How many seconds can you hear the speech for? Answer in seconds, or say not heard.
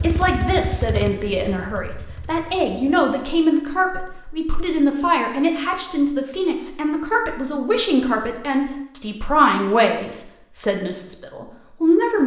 12 s.